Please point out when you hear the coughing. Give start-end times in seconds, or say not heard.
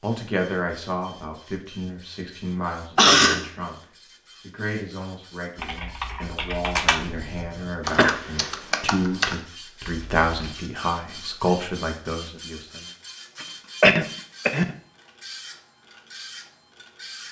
3.0-3.5, 7.2-8.2, 13.4-14.8.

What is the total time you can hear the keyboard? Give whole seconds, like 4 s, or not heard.
5 s.